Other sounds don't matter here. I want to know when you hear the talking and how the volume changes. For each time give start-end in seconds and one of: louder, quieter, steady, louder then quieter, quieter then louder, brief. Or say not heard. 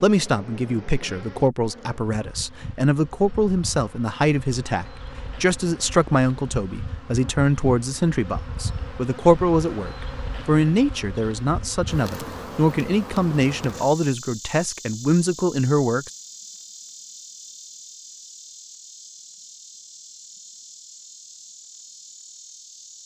0.0-16.1 steady.